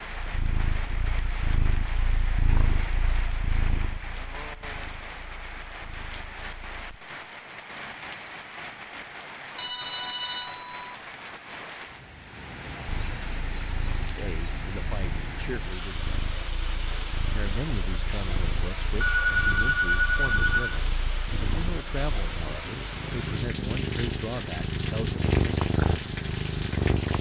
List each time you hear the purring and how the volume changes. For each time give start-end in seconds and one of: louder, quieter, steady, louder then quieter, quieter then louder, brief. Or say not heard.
0.1-6.8 quieter
12.9-27.1 louder.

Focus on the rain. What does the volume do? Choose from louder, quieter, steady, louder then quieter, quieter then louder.
steady.